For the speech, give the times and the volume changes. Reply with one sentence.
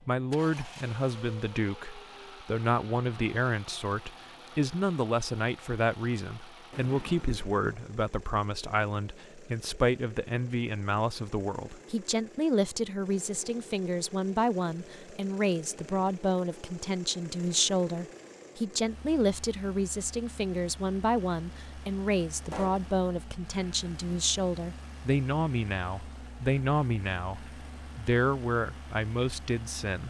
The speech can be heard from 0.1 to 30.0 s, at a steady volume.